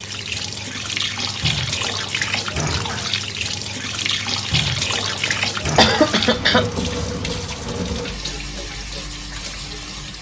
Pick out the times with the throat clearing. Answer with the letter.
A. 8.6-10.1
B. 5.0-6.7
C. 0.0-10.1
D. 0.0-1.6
B.